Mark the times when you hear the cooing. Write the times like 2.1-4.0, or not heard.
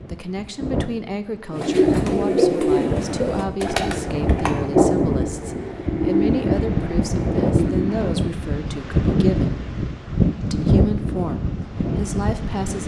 1.5-8.1.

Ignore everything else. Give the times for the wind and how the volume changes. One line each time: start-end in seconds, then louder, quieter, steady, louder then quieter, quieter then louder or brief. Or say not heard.
0.0-12.8 louder.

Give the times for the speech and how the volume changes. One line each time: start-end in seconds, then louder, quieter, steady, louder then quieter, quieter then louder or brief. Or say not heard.
0.1-9.7 steady
10.5-12.8 brief.